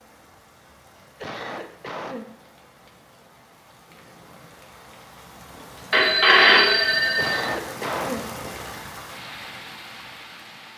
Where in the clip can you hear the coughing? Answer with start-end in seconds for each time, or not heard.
0.9-2.3, 7.0-8.2.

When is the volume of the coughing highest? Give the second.
8 s.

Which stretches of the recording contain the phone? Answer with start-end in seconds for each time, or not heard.
5.9-7.5.